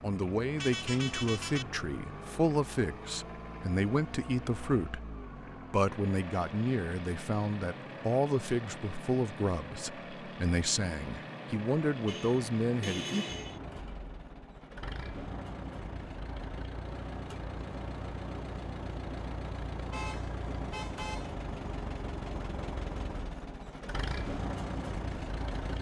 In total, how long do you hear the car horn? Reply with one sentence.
The car horn can be heard for 4 seconds in total.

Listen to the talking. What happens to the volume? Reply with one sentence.
The loudness of the talking stays about the same.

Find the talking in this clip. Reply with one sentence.
The talking can be heard from 0.0 to 5.0 s and from 5.7 to 13.2 s.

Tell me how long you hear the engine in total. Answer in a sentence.
You can hear the engine for 26 seconds altogether.